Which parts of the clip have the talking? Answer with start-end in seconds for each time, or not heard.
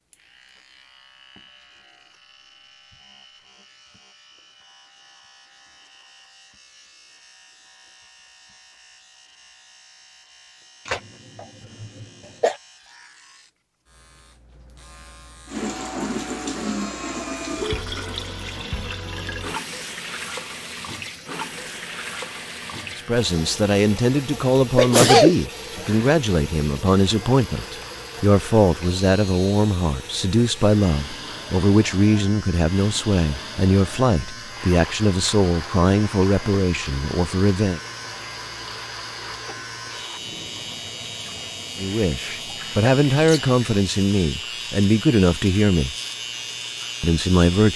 22.9-37.8, 41.8-46.0, 47.0-47.7.